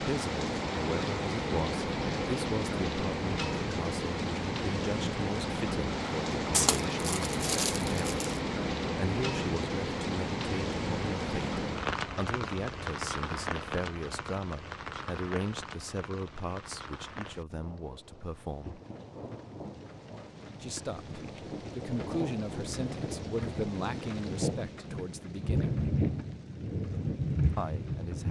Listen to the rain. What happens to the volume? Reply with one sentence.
The volume of the rain goes down, then up.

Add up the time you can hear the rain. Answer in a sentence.
The rain can be heard for 28 seconds in total.